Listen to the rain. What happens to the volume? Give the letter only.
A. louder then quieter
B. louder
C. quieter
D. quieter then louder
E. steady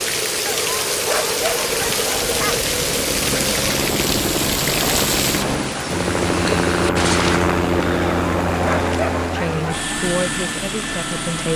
C.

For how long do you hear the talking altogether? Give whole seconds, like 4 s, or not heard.
2 s.